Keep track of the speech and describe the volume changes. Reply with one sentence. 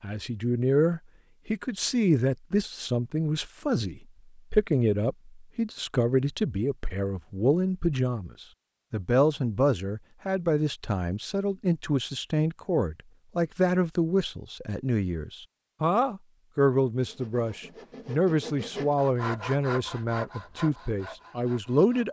The volume of the speech stays about the same.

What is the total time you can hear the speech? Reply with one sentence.
The speech can be heard for 22 seconds in total.